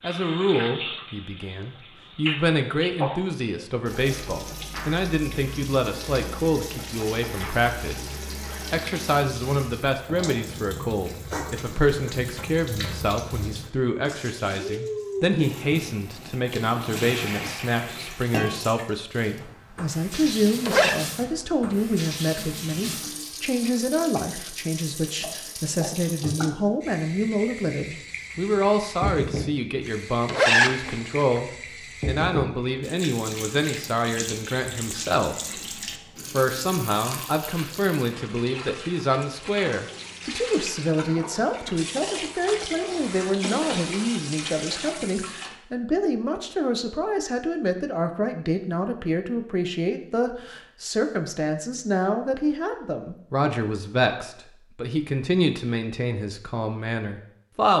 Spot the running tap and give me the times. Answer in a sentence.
The running tap can be heard from 0.0 to 45.5 s.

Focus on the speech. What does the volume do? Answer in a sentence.
The volume of the speech stays about the same.